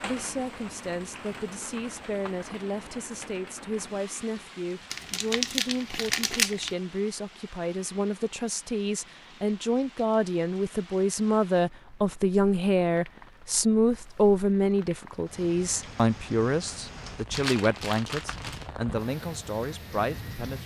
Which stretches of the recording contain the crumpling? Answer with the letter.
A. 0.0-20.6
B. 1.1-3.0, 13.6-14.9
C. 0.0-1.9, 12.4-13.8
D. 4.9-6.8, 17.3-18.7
D.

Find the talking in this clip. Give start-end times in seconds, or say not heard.
0.0-20.6.